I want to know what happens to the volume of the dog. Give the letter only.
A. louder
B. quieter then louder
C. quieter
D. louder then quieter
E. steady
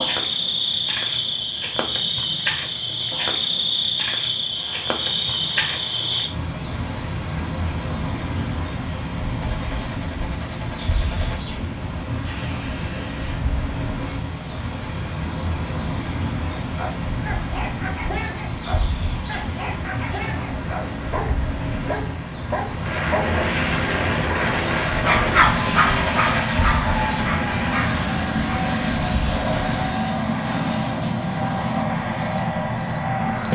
D.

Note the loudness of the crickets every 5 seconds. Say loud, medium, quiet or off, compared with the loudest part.
loud, loud, medium, medium, medium, medium, loud.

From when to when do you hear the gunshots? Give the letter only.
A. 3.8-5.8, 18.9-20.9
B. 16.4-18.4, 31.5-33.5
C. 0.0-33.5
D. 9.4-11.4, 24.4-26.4
D.